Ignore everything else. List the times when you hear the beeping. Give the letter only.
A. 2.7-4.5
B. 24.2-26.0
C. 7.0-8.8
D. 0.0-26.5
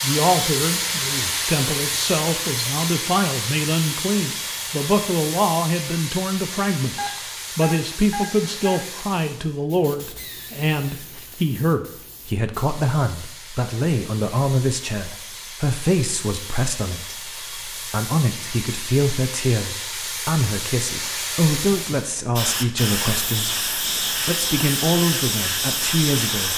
C.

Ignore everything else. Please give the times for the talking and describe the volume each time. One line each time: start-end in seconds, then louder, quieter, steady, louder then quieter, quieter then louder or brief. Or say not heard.
0.0-26.5 steady.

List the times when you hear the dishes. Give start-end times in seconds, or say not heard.
not heard.